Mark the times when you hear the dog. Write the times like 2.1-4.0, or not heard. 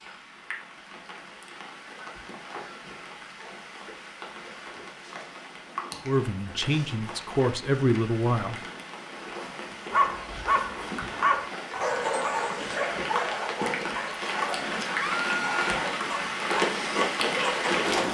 9.9-18.0.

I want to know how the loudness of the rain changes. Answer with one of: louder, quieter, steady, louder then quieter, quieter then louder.
louder.